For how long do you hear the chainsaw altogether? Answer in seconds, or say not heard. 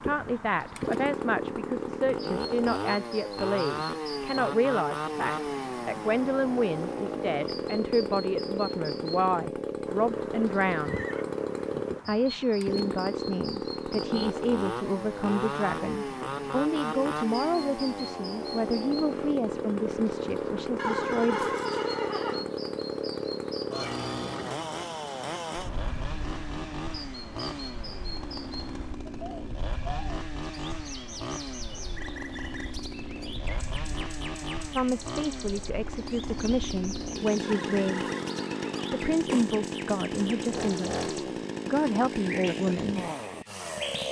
44 s.